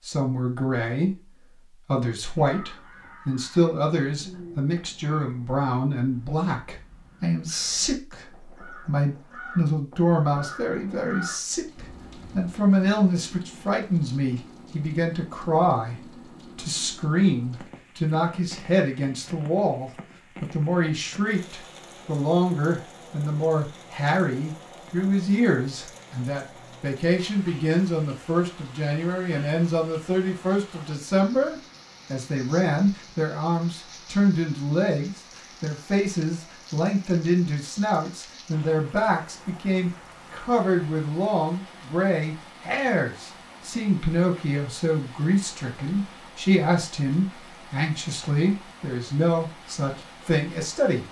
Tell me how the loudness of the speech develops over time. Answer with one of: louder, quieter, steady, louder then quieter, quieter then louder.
steady.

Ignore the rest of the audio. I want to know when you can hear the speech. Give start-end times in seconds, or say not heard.
0.0-51.0.